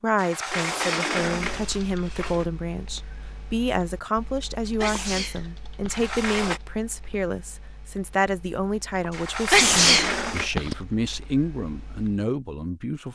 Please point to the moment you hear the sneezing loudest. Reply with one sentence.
The volume of the sneezing peaks at 10 seconds.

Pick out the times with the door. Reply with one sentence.
The door can be heard from 0.1 to 2.5 s, from 5.8 to 6.6 s and from 9.1 to 10.5 s.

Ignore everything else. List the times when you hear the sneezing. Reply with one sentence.
The sneezing can be heard from 0.5 to 1.8 s, from 4.8 to 6.0 s and from 9.5 to 10.8 s.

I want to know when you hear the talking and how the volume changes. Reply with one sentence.
The talking can be heard from 0.0 to 13.1 s, at a steady volume.